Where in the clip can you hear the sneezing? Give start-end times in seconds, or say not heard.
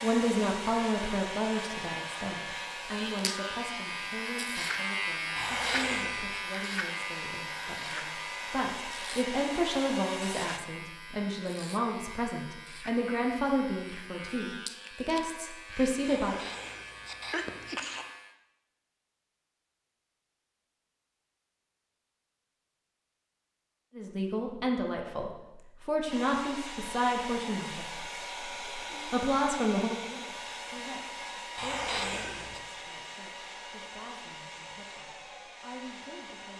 5.3-6.4, 16.1-18.1, 31.6-32.6.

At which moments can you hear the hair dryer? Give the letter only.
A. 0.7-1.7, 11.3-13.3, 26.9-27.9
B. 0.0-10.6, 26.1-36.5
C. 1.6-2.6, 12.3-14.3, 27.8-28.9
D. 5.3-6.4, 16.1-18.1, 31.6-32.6
B.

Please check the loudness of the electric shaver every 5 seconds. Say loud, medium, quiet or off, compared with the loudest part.
loud, loud, medium, medium, off, off, off, off.